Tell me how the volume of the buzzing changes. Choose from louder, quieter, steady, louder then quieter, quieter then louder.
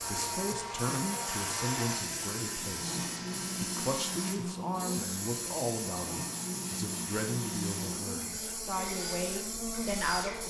steady.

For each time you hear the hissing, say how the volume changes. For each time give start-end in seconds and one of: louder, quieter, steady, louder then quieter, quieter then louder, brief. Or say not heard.
0.0-10.4 steady.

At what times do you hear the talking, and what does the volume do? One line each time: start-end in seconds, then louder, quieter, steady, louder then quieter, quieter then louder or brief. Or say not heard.
0.1-10.4 steady.